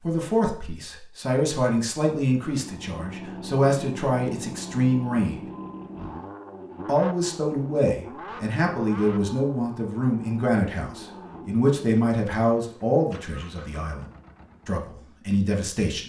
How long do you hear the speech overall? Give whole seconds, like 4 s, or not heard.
14 s.